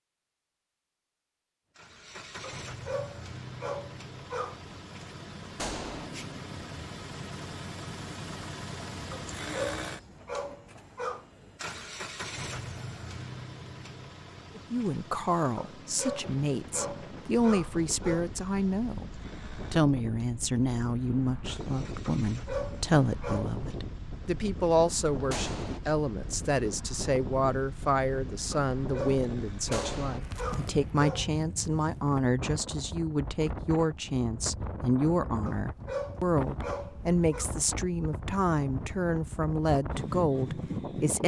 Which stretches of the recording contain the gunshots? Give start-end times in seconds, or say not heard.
5.5-6.1, 25.3-25.8, 29.7-30.2.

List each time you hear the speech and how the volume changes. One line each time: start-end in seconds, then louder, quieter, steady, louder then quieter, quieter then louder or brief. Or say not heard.
14.6-41.2 steady.